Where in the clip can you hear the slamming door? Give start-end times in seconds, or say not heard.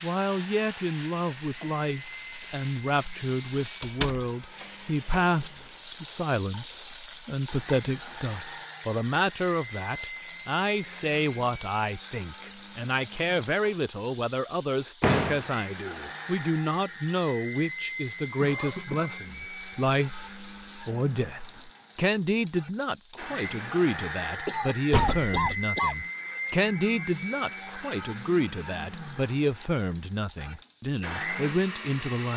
3.8-4.2, 15.0-15.4, 24.9-25.6.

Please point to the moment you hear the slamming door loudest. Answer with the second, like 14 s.
15 s.